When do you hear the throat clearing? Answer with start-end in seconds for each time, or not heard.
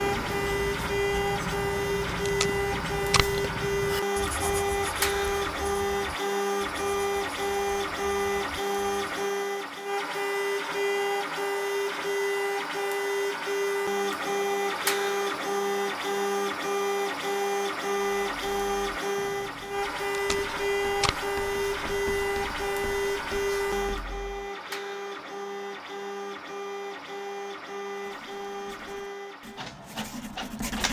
not heard.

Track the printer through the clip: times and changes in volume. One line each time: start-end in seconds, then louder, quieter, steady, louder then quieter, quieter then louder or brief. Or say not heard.
0.0-30.8 quieter.